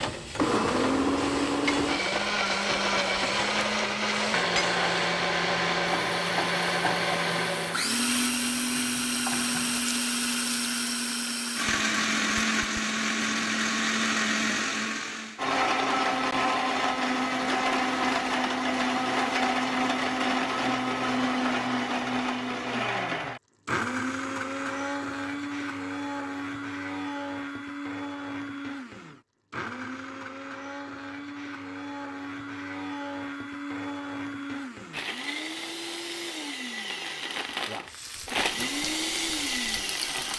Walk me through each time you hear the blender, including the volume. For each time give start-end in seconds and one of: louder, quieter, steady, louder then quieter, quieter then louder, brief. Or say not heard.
0.0-40.3 quieter.